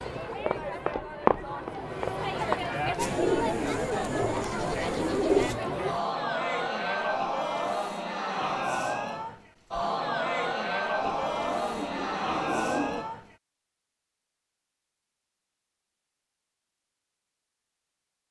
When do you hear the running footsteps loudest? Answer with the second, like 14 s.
1 s.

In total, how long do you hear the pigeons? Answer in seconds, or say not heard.
5 s.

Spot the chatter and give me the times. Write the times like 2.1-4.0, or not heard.
0.0-13.3.